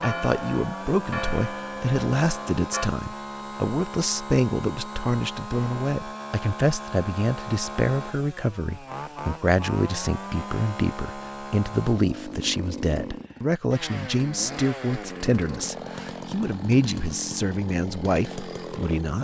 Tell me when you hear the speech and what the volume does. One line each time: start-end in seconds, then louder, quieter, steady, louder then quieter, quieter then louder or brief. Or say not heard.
0.0-19.2 steady.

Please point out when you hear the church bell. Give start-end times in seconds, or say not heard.
0.0-2.9.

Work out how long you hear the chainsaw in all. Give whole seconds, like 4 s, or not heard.
19 s.